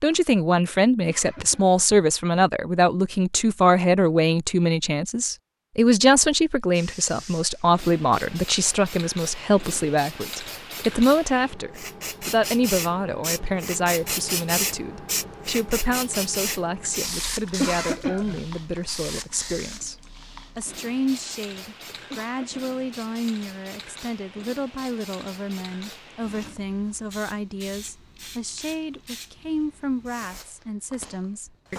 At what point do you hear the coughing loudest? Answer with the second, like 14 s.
18 s.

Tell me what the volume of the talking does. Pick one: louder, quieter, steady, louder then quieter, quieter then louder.
quieter.